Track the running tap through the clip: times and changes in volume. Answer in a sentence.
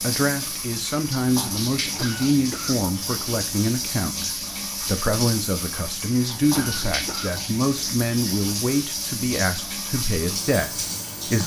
The running tap can be heard from 0.0 to 11.4 s, at a steady volume.